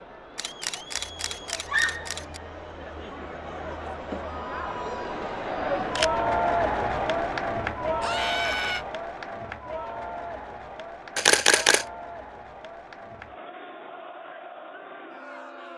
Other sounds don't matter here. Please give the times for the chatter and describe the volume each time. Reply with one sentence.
You can hear the chatter from 0.0 to 15.7 s, getting louder then quieter.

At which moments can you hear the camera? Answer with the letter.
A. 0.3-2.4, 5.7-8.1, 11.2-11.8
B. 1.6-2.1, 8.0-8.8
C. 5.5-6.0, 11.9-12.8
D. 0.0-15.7
A.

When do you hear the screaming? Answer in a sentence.
You can hear the screaming from 1.6 to 2.1 s and from 8.0 to 8.8 s.